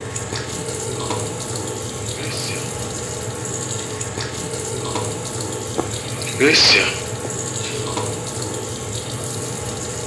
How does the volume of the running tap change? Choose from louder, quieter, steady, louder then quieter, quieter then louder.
steady.